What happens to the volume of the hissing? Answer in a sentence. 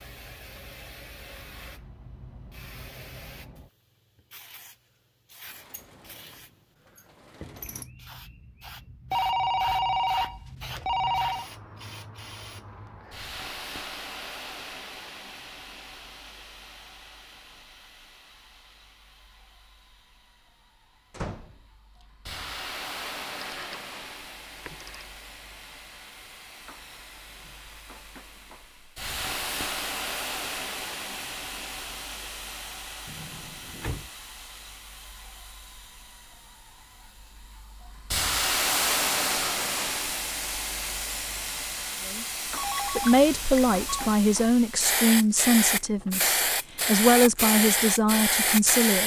The volume of the hissing goes up.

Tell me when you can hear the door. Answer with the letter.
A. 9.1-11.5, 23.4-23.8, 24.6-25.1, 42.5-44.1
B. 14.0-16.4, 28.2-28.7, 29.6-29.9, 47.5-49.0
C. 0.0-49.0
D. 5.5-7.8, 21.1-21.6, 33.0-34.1
D.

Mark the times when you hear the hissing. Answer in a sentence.
The hissing can be heard from 0.0 to 49.0 s.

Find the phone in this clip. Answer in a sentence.
You can hear the phone from 9.1 to 11.5 s, from 23.4 to 23.8 s, from 24.6 to 25.1 s and from 42.5 to 44.1 s.